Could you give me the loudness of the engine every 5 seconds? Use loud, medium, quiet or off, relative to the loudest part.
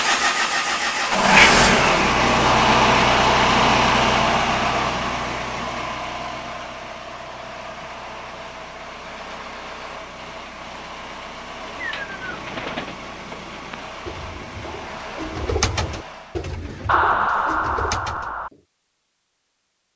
loud, quiet, quiet, quiet.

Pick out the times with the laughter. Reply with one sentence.
The laughter can be heard from 16.9 to 18.5 s.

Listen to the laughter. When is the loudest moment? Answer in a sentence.
The volume of the laughter peaks at 17 seconds.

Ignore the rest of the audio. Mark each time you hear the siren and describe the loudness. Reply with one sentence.
The siren can't be heard in this clip.